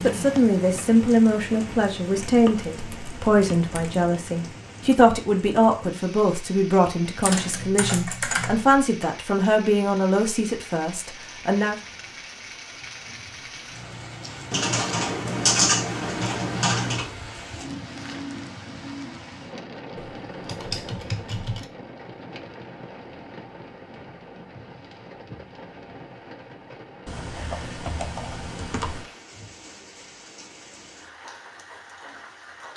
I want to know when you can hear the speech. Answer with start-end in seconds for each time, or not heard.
0.0-11.8.